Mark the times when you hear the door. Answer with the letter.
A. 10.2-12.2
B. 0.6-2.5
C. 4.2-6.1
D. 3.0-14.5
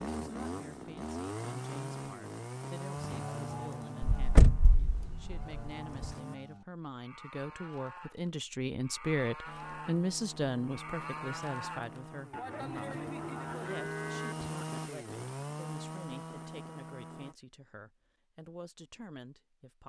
C.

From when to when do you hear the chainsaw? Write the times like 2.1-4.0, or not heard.
0.0-6.4, 9.4-17.4.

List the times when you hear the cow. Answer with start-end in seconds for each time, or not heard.
3.0-14.5.